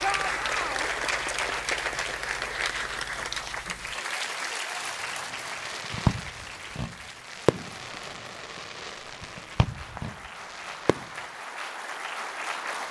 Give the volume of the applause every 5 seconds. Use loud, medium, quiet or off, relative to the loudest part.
loud, medium, medium.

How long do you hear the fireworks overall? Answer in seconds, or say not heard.
6 s.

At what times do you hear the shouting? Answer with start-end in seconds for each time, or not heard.
0.0-0.9.